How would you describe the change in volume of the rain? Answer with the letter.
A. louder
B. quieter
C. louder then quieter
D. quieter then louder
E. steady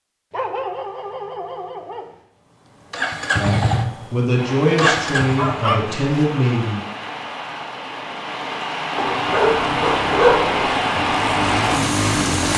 A.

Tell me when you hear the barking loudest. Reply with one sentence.
The loudest moment of the barking is at 10 seconds.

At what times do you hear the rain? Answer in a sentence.
The rain can be heard from 4.3 to 12.5 s.